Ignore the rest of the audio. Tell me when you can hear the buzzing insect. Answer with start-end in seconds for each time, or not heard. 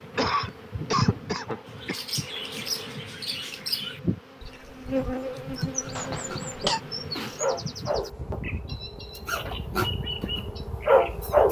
0.0-11.4.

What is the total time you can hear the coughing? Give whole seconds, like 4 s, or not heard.
3 s.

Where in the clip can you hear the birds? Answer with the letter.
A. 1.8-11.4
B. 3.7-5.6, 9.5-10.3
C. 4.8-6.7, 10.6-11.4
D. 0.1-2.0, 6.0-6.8
A.